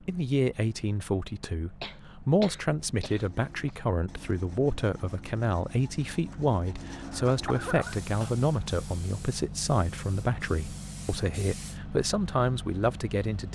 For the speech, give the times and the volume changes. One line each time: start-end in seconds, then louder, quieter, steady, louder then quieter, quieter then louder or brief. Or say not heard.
0.1-13.4 steady.